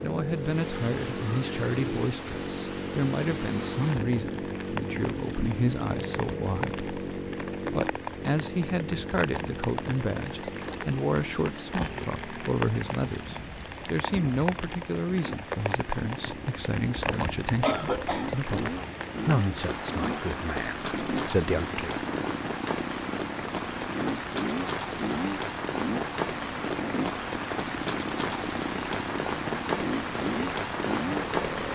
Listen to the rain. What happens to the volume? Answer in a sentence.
The loudness of the rain goes up.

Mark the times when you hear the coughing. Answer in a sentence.
You can hear the coughing from 17.1 to 18.4 s.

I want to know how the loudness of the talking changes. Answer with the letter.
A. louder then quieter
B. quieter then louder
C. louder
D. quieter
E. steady
E.